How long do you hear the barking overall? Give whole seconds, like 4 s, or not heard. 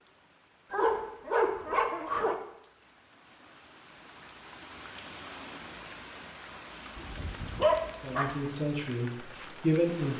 3 s.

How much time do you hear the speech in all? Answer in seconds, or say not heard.
2 s.